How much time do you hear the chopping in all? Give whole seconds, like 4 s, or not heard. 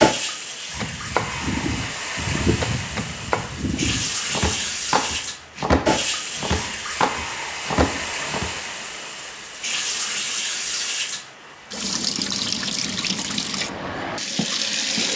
8 s.